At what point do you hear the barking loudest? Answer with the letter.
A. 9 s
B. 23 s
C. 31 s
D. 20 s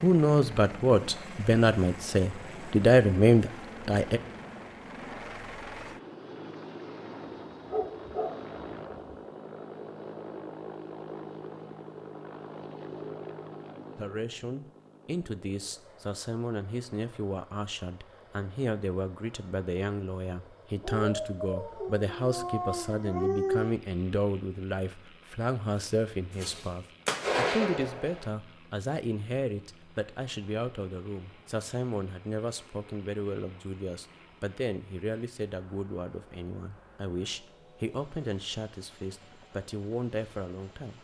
B.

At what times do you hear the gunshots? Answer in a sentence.
You can hear the gunshots from 26.4 to 28.2 s.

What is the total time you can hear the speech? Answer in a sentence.
You can hear the speech for 31 seconds altogether.